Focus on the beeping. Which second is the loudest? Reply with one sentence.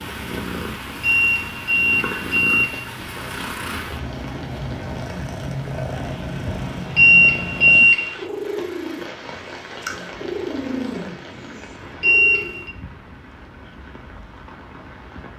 The volume of the beeping peaks at 7 seconds.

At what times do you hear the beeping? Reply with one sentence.
The beeping can be heard from 1.0 to 2.9 s, from 7.0 to 8.2 s and from 12.0 to 12.8 s.